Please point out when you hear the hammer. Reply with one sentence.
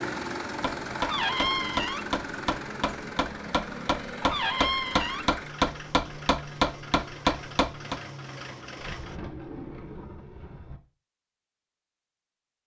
The hammer can be heard from 0.6 to 8.0 s.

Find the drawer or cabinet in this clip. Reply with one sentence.
You can hear the drawer or cabinet from 1.0 to 2.1 s, from 4.2 to 5.3 s and from 8.8 to 10.8 s.